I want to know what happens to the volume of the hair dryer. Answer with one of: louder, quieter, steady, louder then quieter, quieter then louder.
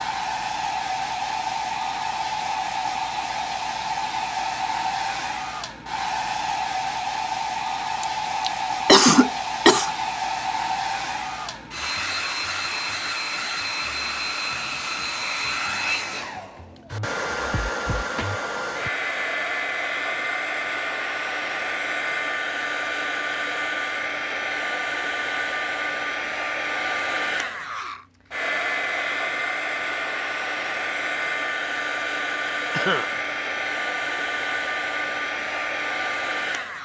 steady.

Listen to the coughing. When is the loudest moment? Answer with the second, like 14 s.
9 s.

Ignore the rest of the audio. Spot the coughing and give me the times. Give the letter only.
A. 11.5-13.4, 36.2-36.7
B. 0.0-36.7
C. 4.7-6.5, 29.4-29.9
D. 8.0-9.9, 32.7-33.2
D.